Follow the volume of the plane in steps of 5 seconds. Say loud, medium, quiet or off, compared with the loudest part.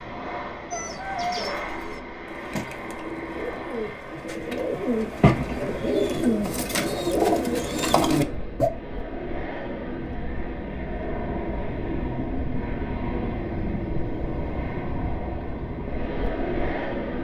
medium, medium, loud, loud.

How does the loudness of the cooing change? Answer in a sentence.
The volume of the cooing goes up.